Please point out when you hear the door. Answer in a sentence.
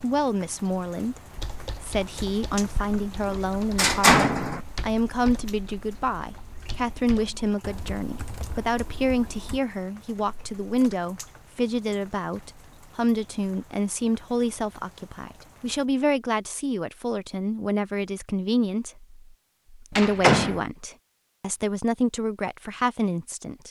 You can hear the door from 3.2 to 4.6 s, from 10.2 to 11.0 s and from 19.9 to 20.6 s.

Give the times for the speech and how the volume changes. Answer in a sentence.
You can hear the speech from 0.0 to 23.6 s, at a steady volume.